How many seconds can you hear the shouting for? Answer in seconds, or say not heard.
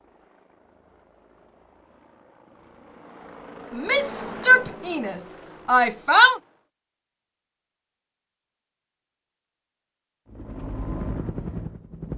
3 s.